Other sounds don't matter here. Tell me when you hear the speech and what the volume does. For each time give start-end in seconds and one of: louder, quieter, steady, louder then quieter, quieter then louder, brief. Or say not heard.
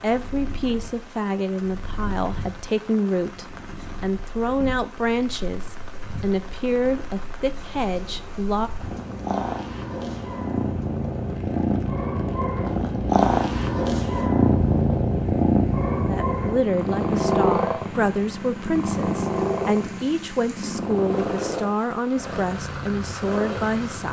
0.0-8.7 steady
16.1-24.0 steady.